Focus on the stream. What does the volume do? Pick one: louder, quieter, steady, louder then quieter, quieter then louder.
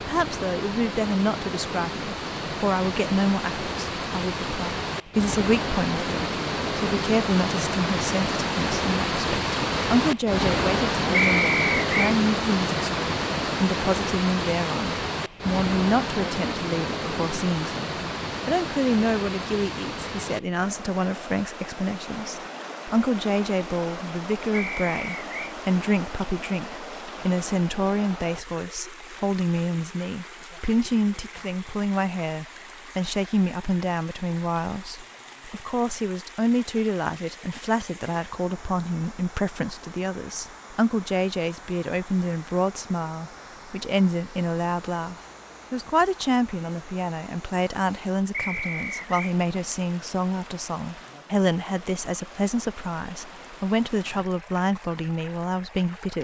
quieter.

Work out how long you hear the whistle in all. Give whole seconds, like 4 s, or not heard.
3 s.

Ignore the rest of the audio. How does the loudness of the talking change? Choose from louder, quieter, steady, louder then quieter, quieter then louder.
steady.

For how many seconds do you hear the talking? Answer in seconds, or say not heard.
56 s.